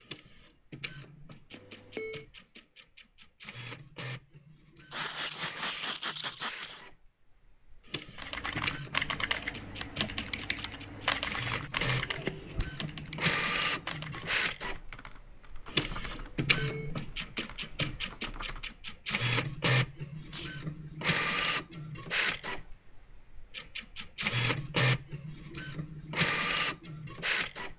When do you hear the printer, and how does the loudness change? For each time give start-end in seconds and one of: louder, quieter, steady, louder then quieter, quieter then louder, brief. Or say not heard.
0.0-27.7 louder.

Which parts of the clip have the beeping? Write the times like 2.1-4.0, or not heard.
1.5-2.2, 16.1-17.0.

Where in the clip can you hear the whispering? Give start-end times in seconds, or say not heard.
not heard.